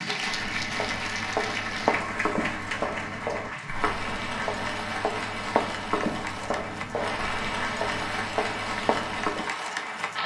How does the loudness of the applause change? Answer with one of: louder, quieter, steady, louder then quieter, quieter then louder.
steady.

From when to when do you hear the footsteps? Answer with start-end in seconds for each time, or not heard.
0.2-9.5.